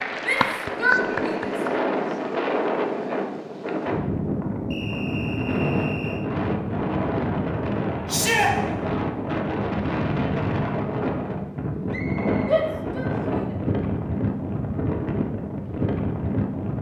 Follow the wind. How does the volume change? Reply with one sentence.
The volume of the wind stays about the same.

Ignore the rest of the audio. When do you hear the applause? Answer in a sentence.
The applause can be heard from 0.0 to 1.6 s.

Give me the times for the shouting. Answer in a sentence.
The shouting can be heard from 0.2 to 1.6 s, from 8.1 to 8.5 s and from 12.4 to 13.6 s.